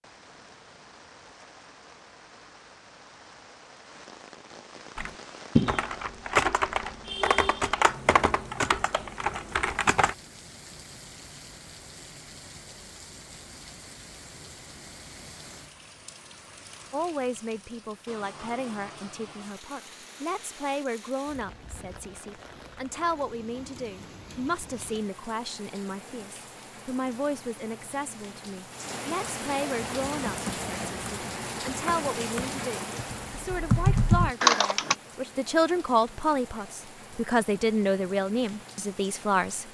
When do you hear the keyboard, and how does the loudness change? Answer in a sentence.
The keyboard can be heard from 5.0 to 10.2 s, getting quieter; and from 29.8 to 35.0 s, getting quieter then louder.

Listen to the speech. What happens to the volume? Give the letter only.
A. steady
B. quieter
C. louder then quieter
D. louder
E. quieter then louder
D.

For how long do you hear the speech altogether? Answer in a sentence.
The speech can be heard for 23 seconds in total.